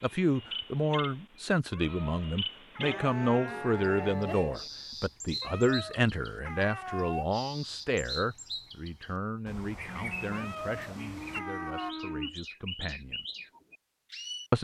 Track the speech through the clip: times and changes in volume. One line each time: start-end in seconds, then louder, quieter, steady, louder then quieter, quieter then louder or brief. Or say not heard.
0.0-13.2 quieter.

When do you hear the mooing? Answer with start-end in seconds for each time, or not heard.
2.8-4.7, 9.8-12.4.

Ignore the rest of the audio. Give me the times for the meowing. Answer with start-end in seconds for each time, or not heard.
1.7-3.0, 5.4-7.3, 10.3-11.9.